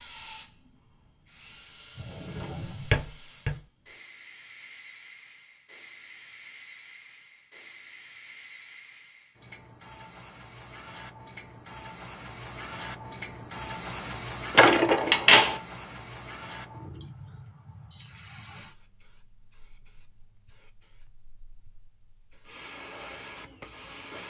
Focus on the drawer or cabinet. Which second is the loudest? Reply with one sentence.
The volume of the drawer or cabinet peaks at 15 seconds.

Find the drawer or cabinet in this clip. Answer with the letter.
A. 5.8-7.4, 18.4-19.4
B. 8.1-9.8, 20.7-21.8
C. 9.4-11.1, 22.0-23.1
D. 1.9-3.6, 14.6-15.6
D.